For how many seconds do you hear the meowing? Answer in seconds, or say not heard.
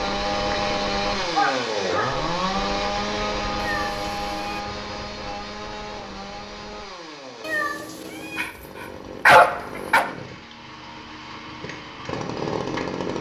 2 s.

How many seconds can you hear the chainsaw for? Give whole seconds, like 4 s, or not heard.
13 s.